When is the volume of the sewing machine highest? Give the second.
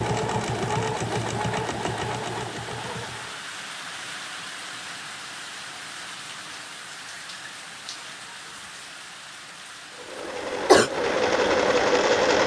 12 s.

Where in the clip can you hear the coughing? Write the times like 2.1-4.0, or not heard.
10.2-10.9.